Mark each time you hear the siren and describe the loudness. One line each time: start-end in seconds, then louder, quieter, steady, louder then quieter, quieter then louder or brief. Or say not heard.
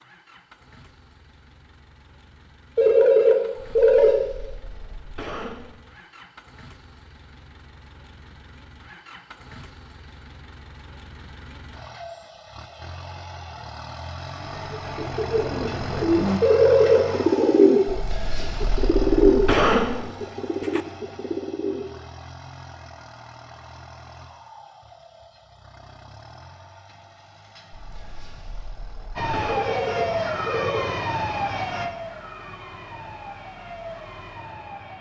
29.1-34.9 quieter.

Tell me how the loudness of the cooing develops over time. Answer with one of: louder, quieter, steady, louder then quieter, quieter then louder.
louder then quieter.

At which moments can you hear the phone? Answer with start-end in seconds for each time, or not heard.
2.8-4.2, 16.4-17.6, 29.4-30.9.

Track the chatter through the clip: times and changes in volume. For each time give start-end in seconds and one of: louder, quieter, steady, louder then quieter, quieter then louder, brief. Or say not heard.
not heard.